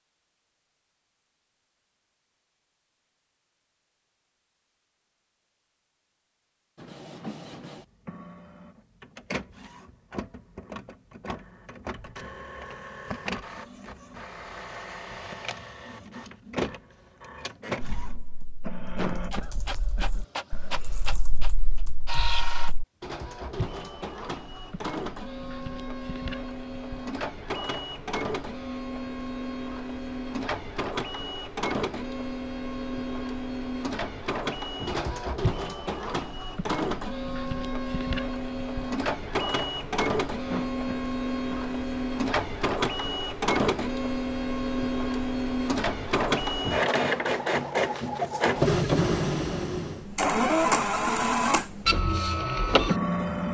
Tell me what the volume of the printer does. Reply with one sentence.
The volume of the printer goes up.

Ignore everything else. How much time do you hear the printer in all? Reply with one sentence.
The printer can be heard for 47 seconds in total.